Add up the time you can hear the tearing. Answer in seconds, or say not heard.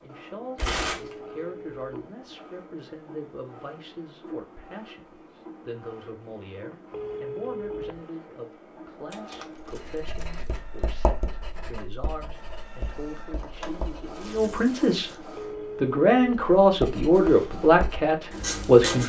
3 s.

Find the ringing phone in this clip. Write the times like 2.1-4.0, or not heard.
1.1-1.9, 6.9-8.1, 15.3-16.4.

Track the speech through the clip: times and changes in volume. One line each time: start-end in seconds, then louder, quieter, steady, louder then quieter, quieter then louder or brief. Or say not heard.
0.0-19.0 louder.